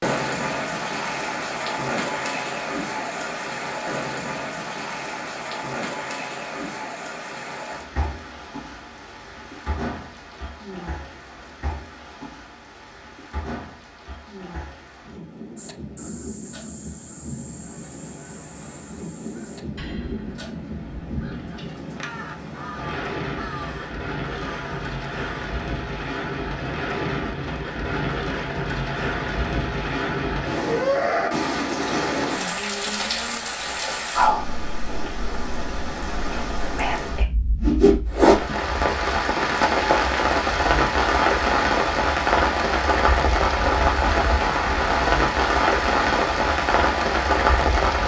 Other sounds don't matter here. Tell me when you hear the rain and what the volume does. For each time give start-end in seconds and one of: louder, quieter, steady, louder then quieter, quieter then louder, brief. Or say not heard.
0.0-48.0 quieter then louder.